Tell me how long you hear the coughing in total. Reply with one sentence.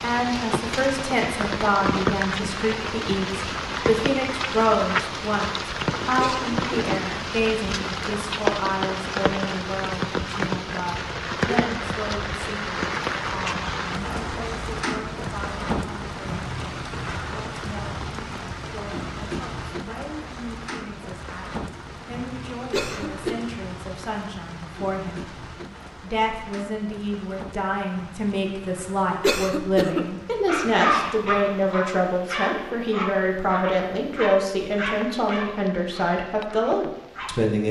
You can hear the coughing for 2 seconds altogether.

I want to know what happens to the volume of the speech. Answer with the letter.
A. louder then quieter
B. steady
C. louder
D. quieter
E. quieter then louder
E.